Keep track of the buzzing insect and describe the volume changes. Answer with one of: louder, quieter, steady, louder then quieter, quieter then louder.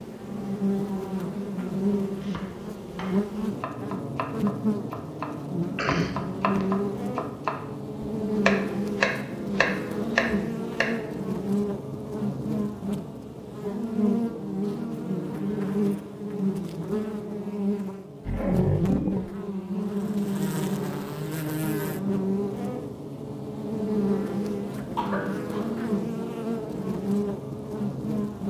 steady.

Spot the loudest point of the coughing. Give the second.
6 s.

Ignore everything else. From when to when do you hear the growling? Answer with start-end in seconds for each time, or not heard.
18.2-19.3.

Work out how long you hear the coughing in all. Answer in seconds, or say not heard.
2 s.